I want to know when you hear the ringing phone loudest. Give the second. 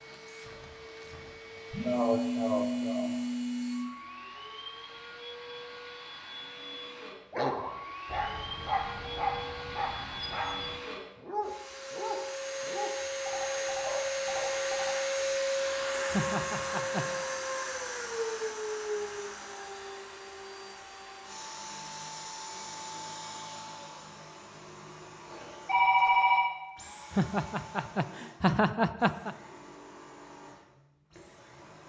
26 s.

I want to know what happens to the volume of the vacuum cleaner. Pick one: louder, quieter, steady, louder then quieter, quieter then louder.
louder then quieter.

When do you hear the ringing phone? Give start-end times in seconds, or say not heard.
1.7-3.9, 13.2-14.9, 25.6-26.5.